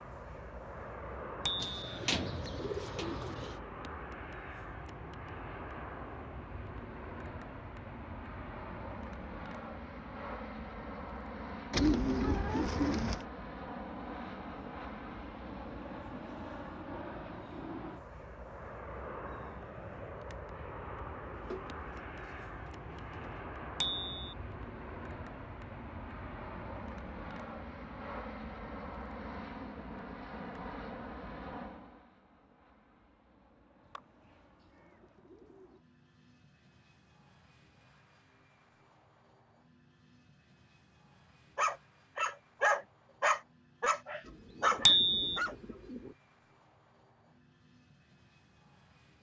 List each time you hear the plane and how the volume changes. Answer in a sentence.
The plane can be heard from 0.0 to 49.1 s, getting quieter.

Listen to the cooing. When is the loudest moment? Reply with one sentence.
The volume of the cooing peaks at 12 seconds.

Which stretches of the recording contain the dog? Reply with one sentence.
You can hear the dog from 41.5 to 45.5 s.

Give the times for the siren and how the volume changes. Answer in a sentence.
The siren can't be heard in this clip.